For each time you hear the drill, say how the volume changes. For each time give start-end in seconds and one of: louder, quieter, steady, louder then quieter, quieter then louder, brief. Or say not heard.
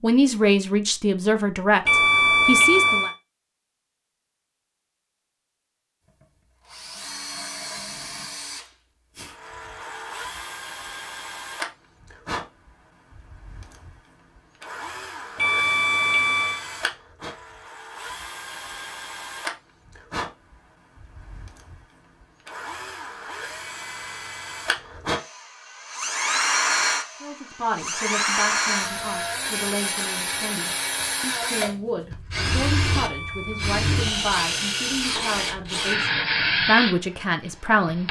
6.2-38.0 louder.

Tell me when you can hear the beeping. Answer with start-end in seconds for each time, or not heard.
1.9-3.1, 15.3-16.6, 32.9-33.8.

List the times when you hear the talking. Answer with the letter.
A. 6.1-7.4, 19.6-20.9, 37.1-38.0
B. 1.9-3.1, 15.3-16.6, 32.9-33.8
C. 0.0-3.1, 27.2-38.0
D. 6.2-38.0
C.